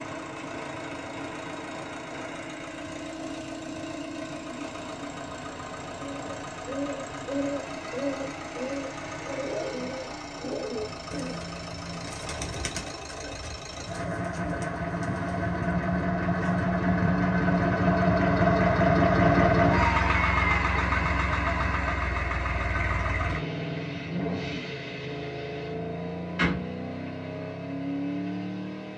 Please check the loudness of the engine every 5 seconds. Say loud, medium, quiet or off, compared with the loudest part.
quiet, quiet, quiet, loud, medium, medium.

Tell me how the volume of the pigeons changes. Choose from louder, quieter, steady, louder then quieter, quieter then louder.
quieter.